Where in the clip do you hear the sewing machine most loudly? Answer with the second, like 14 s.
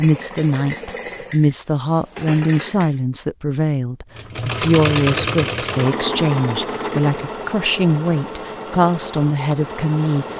5 s.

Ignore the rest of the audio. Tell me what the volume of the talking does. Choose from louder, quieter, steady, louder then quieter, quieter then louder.
steady.